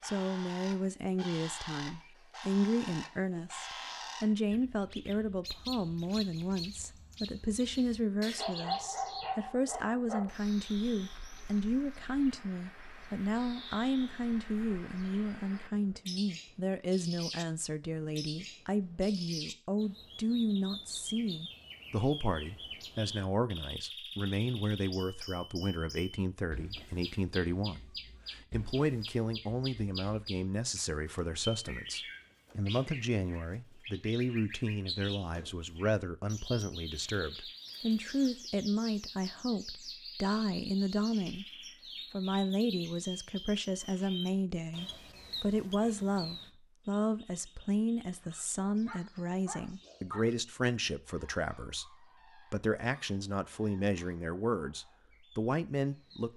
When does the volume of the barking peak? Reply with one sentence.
The volume of the barking peaks at 9 seconds.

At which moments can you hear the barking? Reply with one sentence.
The barking can be heard from 8.3 to 10.3 s and from 48.2 to 50.4 s.